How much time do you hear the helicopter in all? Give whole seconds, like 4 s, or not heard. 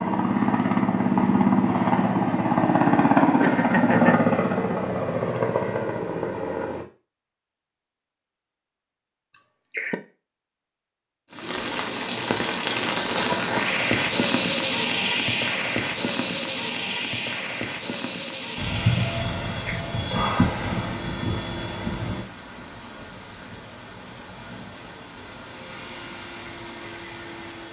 16 s.